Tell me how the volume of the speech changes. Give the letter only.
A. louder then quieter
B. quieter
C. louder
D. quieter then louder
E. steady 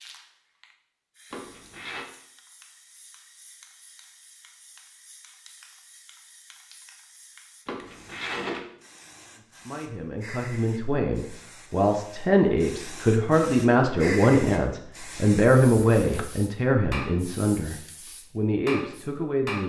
A.